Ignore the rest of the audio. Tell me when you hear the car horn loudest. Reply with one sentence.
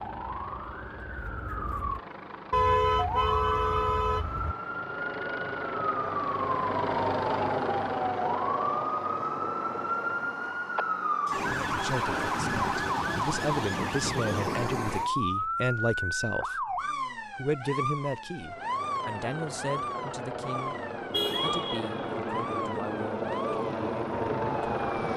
The loudest moment of the car horn is at 3 seconds.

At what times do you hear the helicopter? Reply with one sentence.
You can hear the helicopter from 0.0 to 10.6 s and from 18.4 to 25.1 s.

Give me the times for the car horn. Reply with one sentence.
The car horn can be heard from 2.5 to 4.5 s and from 21.1 to 21.9 s.